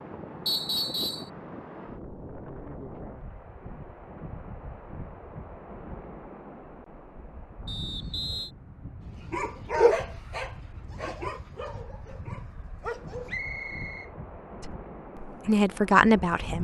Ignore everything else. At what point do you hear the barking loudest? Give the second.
10 s.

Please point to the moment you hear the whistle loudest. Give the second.
1 s.